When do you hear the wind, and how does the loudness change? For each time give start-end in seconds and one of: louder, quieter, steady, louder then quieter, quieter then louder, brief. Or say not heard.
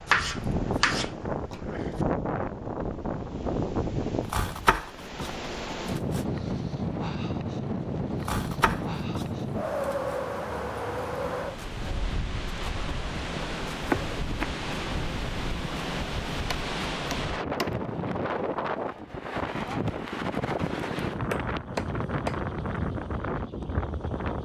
0.0-24.3 steady.